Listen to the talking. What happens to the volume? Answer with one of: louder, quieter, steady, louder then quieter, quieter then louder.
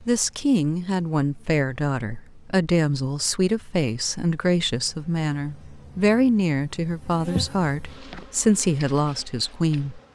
steady.